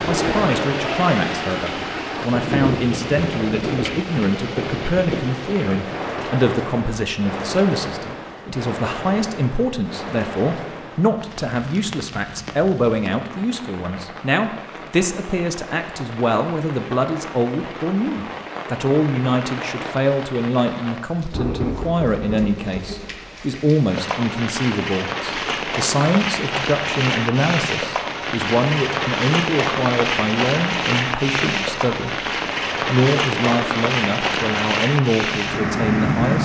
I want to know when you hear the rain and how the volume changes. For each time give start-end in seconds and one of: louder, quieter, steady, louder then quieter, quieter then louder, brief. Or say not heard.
0.0-36.4 quieter then louder.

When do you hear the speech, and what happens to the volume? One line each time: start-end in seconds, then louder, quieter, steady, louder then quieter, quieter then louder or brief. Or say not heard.
0.0-36.4 steady.